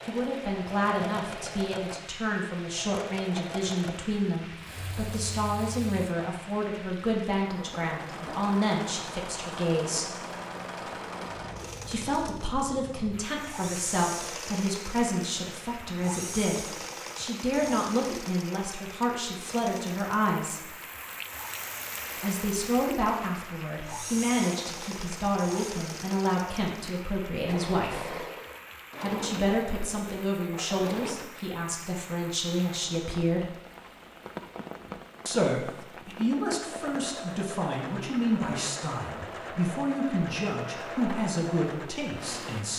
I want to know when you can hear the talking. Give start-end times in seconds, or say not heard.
0.1-10.1, 11.8-20.7, 22.2-28.1, 29.0-33.5, 35.2-42.7.